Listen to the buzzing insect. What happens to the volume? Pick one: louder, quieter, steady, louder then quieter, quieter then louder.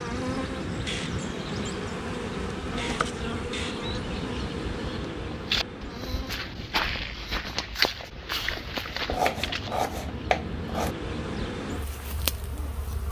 quieter then louder.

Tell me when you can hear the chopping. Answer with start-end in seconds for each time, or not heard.
9.1-10.9.